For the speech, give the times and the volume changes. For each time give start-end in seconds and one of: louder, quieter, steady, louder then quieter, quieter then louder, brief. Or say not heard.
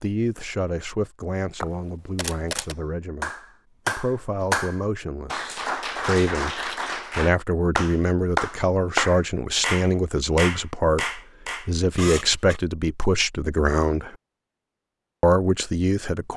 0.0-14.2 louder
15.2-16.3 brief.